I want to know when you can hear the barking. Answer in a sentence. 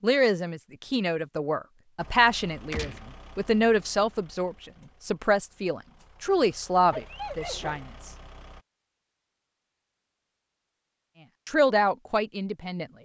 The barking can be heard from 6.8 to 8.4 s.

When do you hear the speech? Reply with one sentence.
The speech can be heard from 0.0 to 8.1 s and from 11.4 to 12.8 s.